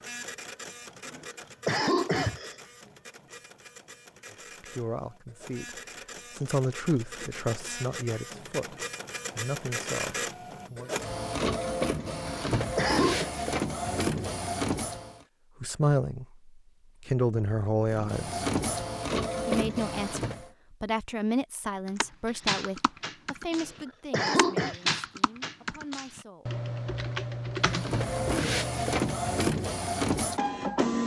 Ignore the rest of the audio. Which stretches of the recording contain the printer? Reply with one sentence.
You can hear the printer from 0.0 to 15.2 s, from 17.9 to 20.5 s and from 27.6 to 31.0 s.